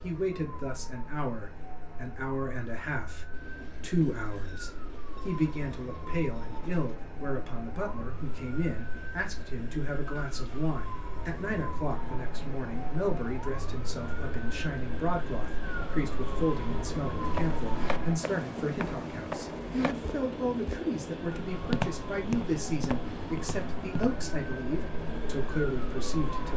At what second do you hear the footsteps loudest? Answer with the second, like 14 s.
22 s.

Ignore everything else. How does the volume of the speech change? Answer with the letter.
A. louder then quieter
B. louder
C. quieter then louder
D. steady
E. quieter
D.